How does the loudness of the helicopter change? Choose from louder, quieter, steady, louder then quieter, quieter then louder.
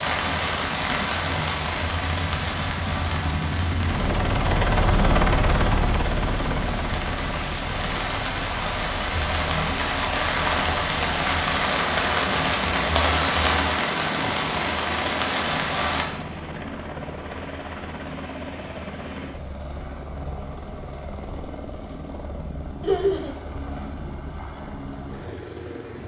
quieter.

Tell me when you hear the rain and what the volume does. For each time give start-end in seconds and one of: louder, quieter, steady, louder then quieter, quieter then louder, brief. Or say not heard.
0.0-16.1 quieter then louder.